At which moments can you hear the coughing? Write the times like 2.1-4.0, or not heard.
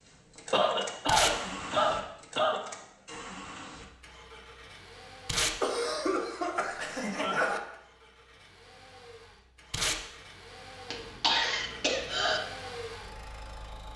0.5-2.6, 5.6-7.6, 10.9-12.4.